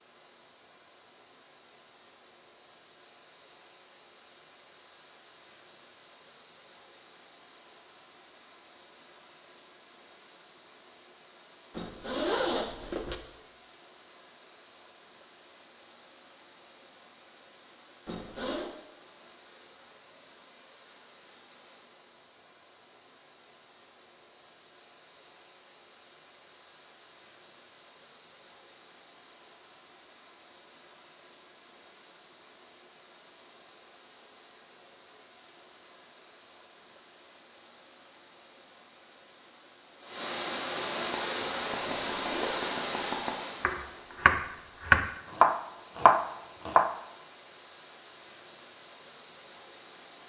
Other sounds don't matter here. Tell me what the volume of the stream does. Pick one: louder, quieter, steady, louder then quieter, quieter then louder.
louder.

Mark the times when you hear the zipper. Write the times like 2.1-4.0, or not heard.
11.8-13.2, 18.1-18.7, 42.0-42.7.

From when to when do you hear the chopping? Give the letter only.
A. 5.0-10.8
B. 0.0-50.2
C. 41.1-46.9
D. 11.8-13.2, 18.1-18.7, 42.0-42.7
C.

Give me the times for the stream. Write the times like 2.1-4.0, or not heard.
0.0-50.2.